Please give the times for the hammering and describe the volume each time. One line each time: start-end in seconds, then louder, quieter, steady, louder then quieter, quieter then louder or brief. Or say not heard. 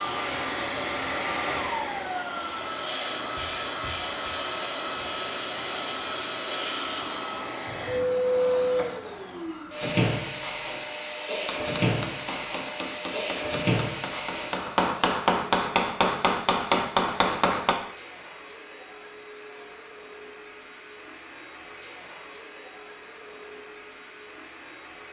11.4-17.8 louder.